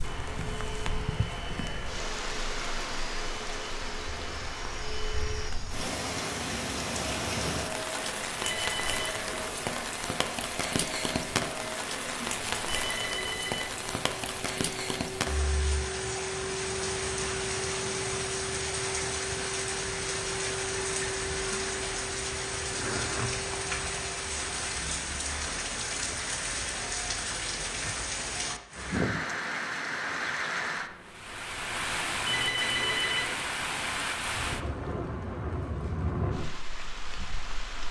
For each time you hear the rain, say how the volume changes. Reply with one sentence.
The rain can be heard from 0.0 to 37.8 s, at a steady volume.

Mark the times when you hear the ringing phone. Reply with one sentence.
The ringing phone can be heard from 8.4 to 9.2 s, from 12.7 to 13.8 s and from 32.2 to 33.4 s.